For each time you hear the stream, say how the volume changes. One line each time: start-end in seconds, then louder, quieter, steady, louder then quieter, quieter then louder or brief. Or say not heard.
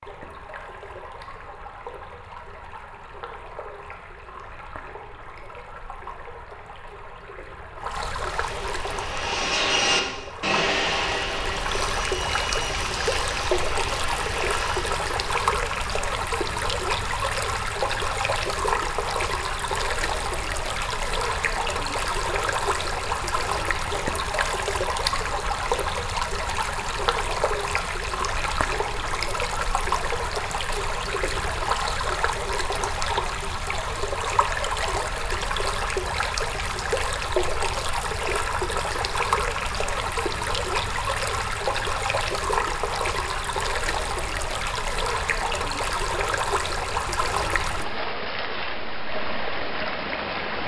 0.0-50.6 louder.